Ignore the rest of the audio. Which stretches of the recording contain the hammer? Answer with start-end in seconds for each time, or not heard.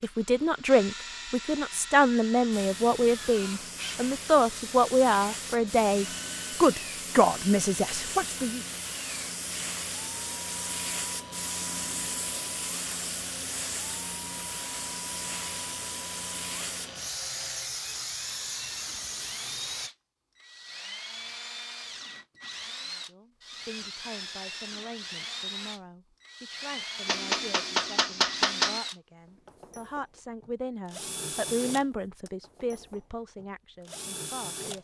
27.1-28.8.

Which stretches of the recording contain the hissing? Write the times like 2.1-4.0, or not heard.
2.5-19.9.